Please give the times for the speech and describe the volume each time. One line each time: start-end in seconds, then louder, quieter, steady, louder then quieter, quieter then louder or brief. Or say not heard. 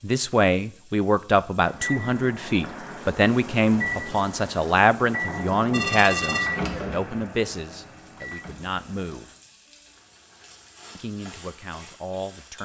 0.0-9.3 quieter
10.9-12.6 brief.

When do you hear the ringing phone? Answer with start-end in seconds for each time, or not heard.
5.7-7.0.